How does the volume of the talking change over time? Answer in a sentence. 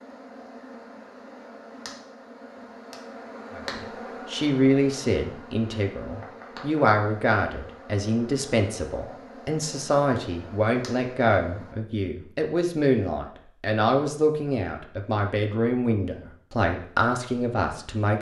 The loudness of the talking stays about the same.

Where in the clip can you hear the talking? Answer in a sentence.
The talking can be heard from 3.5 to 18.1 s.